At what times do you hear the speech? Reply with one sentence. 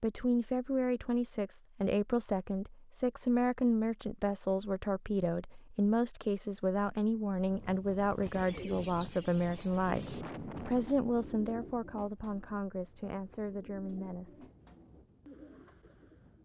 The speech can be heard from 0.0 to 14.4 s.